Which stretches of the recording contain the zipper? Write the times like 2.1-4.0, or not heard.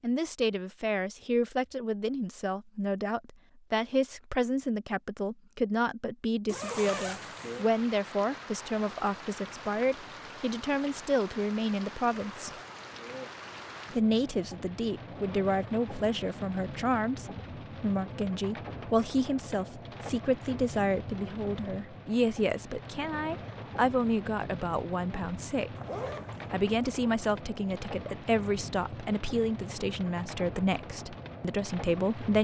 6.5-7.7, 12.2-13.3, 25.8-26.6.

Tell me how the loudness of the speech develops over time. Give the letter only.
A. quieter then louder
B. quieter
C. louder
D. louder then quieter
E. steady
E.